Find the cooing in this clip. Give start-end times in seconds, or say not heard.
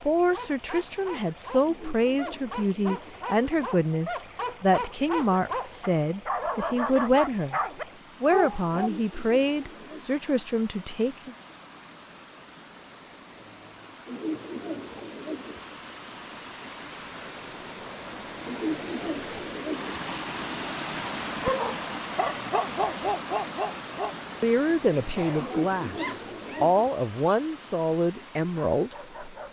1.6-3.2, 8.7-10.2, 14.1-15.6, 18.4-20.0, 25.4-26.9.